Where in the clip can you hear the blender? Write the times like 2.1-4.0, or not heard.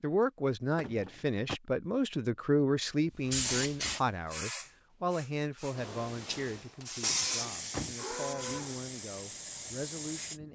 7.0-8.8.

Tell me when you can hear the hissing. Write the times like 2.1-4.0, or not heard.
3.2-10.4.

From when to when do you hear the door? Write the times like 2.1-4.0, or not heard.
0.8-1.6, 7.0-8.0.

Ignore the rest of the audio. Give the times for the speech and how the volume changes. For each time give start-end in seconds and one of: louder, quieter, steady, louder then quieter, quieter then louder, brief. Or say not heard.
0.0-10.5 quieter.